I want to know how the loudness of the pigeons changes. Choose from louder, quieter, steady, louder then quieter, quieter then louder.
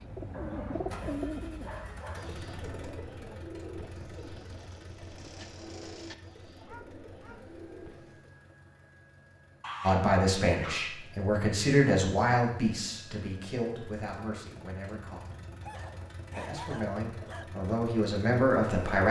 quieter.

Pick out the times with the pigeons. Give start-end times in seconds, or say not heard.
0.0-8.3.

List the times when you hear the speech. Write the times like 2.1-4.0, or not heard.
9.8-15.4, 16.4-19.0.